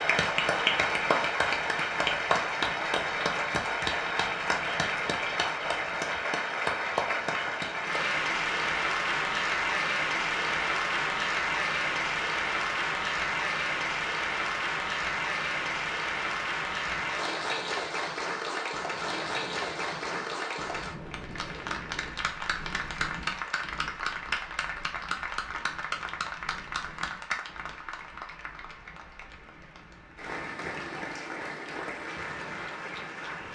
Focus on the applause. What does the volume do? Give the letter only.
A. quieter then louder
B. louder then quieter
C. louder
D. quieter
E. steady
D.